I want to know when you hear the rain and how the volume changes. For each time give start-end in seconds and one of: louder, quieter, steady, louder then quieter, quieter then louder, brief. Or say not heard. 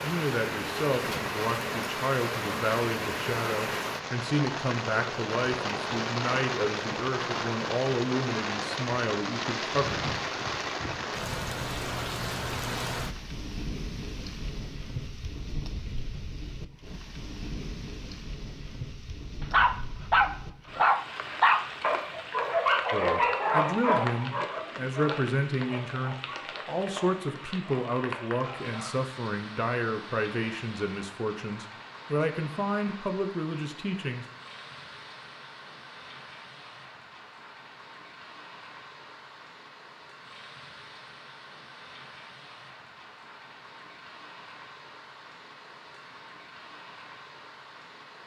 0.0-48.2 quieter.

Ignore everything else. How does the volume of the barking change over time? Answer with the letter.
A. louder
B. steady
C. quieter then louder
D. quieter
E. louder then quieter
D.